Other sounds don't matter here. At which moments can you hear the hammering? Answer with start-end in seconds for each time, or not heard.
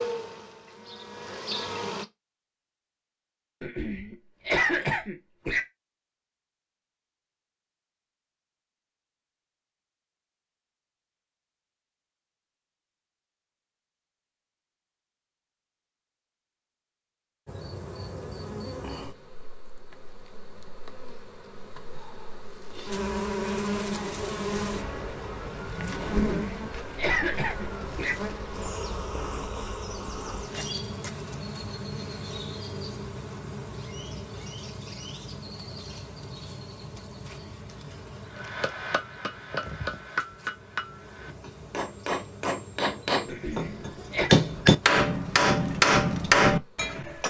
38.3-47.2.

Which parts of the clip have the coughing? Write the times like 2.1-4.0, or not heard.
3.6-5.6, 26.1-28.1, 43.2-44.3.